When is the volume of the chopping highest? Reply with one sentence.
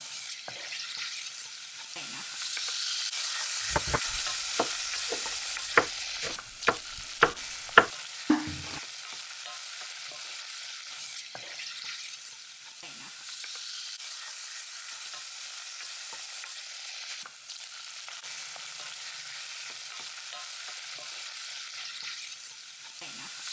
The loudest moment of the chopping is at 8 seconds.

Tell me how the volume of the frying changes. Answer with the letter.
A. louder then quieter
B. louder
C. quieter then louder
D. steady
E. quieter
E.